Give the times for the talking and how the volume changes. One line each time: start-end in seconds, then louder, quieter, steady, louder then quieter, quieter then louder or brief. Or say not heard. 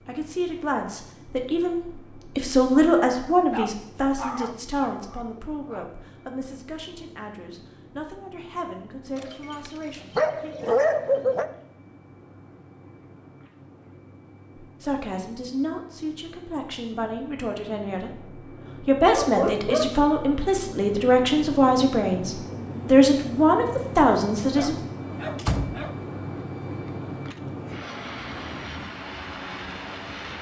0.1-10.6 louder then quieter
14.8-24.8 louder.